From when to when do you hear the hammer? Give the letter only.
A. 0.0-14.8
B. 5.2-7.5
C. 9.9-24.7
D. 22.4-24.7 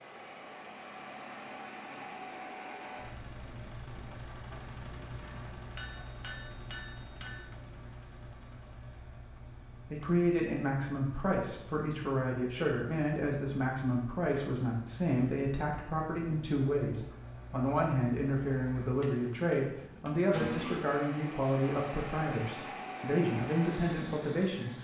B.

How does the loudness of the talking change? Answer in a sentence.
The volume of the talking stays about the same.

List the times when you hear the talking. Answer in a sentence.
The talking can be heard from 9.9 to 24.7 s.